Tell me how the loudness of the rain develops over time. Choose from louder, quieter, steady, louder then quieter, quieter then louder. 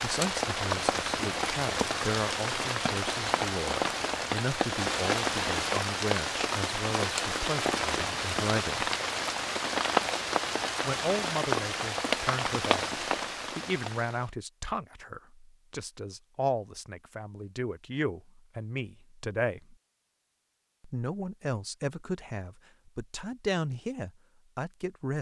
steady.